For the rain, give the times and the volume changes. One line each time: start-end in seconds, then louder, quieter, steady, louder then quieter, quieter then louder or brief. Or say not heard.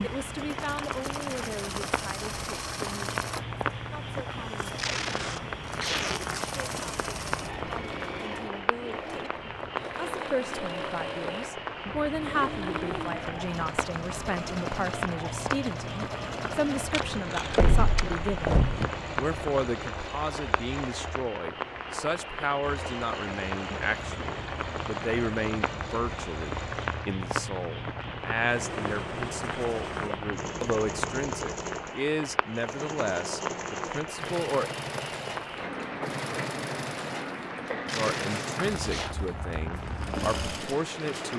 0.0-41.3 steady.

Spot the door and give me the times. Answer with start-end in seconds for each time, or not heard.
17.6-18.9.